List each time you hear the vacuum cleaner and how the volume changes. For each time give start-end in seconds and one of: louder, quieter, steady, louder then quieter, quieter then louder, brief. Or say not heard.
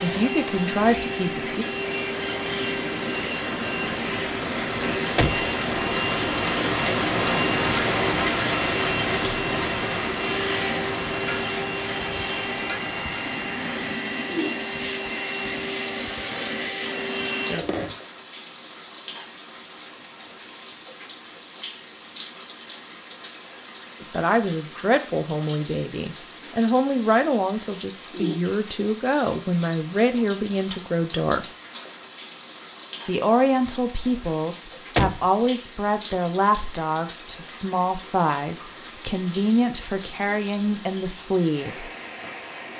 0.0-18.0 steady.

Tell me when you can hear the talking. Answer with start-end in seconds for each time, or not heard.
0.0-1.6, 24.0-31.4, 33.0-41.9.